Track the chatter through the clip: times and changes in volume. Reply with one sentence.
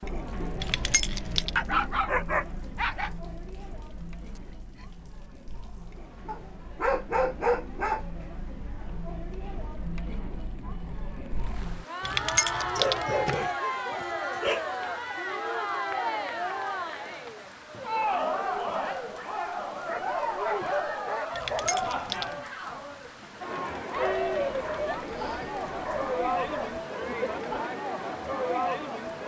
The chatter can be heard from 0.0 to 29.2 s, getting louder.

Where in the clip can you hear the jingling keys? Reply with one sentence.
The jingling keys can be heard from 0.6 to 1.5 s, from 12.0 to 13.5 s and from 21.3 to 22.4 s.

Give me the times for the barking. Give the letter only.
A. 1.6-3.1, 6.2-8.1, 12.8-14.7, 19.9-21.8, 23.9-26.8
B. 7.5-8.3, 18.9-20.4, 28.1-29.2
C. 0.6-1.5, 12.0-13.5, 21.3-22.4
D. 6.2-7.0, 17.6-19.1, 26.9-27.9
A.